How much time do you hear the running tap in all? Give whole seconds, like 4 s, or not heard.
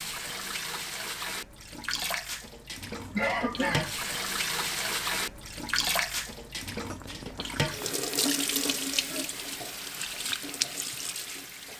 12 s.